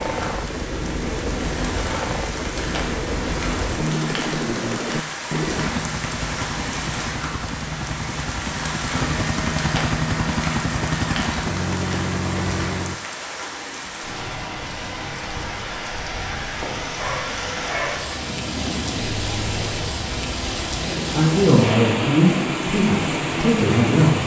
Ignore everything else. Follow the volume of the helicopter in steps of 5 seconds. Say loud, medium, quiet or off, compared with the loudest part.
loud, loud, loud, medium, medium.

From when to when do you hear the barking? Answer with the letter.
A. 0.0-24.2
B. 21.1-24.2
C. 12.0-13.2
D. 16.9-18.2
D.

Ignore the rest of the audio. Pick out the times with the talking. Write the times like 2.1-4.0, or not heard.
21.1-24.2.